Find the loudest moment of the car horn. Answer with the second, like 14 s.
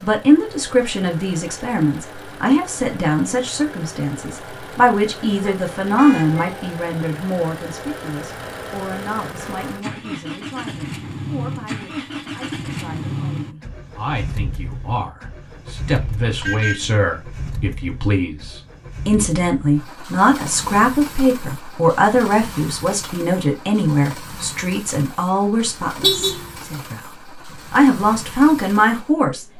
26 s.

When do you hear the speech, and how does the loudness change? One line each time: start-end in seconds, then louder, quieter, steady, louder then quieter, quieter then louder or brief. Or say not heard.
0.0-29.5 quieter then louder.